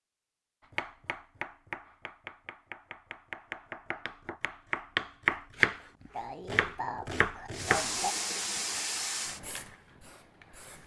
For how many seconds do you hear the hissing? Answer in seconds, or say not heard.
3 s.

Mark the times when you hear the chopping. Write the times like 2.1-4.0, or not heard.
0.8-8.2.